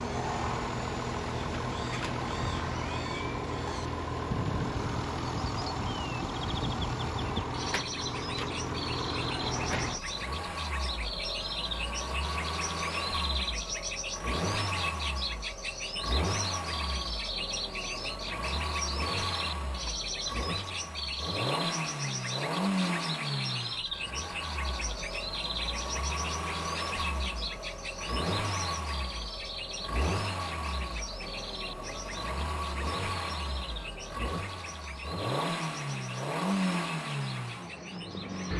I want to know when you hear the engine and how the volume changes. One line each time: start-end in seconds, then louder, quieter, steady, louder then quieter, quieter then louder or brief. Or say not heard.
0.0-38.5 steady.